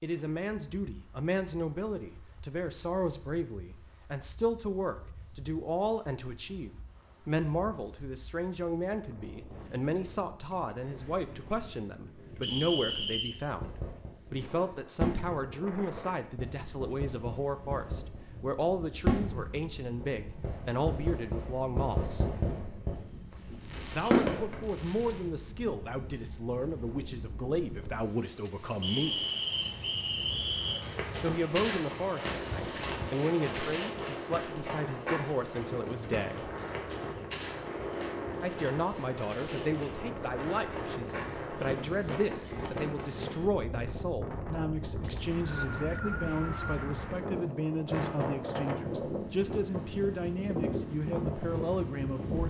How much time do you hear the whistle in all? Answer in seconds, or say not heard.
5 s.